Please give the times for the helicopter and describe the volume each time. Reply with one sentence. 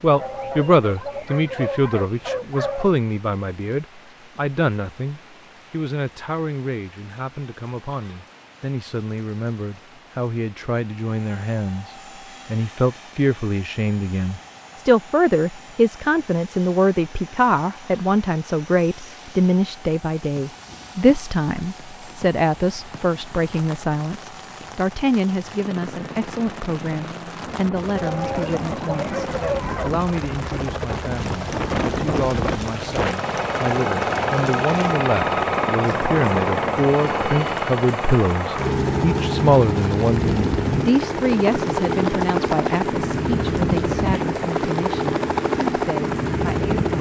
The helicopter can be heard from 11.1 to 46.9 s, getting louder.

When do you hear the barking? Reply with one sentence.
You can hear the barking from 0.1 to 3.0 s and from 27.9 to 30.1 s.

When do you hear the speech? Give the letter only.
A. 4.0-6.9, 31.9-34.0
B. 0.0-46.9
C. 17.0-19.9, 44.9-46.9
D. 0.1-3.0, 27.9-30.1
B.